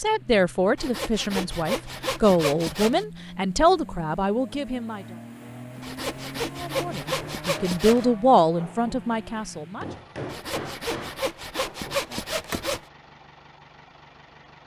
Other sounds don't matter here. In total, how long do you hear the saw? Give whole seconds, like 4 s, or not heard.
7 s.